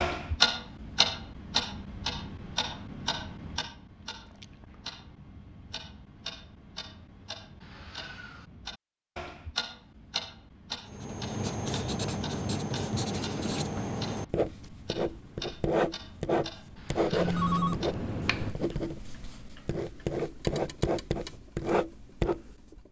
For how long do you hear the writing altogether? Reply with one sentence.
You can hear the writing for 12 seconds altogether.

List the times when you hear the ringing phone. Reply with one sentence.
You can hear the ringing phone from 17.1 to 18.6 s.